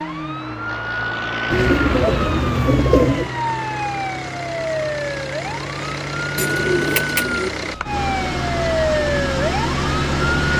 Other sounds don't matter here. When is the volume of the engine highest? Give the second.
10 s.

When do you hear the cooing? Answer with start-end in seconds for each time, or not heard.
1.5-3.4, 6.3-7.5.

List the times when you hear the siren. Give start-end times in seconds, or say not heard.
0.0-10.5.